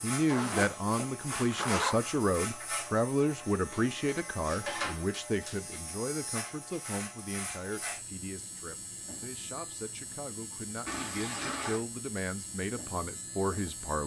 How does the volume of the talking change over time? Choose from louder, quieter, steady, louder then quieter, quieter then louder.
quieter then louder.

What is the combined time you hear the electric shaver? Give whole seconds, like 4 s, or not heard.
14 s.